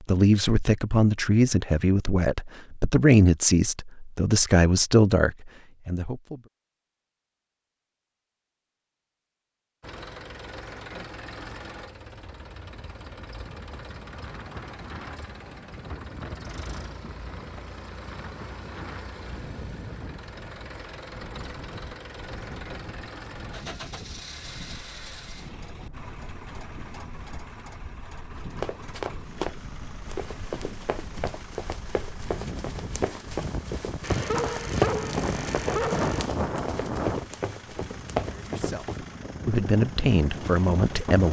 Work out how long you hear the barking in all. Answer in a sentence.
You can hear the barking for 2 seconds altogether.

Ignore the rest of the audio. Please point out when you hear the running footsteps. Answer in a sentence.
The running footsteps can be heard from 28.6 to 39.0 s.